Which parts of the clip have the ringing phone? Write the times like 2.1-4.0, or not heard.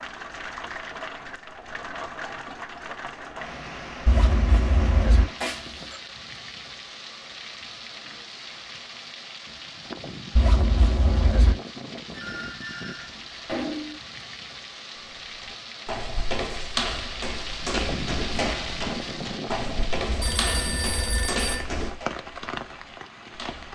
5.3-6.0, 12.1-14.0, 20.2-21.6.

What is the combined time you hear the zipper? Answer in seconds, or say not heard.
4 s.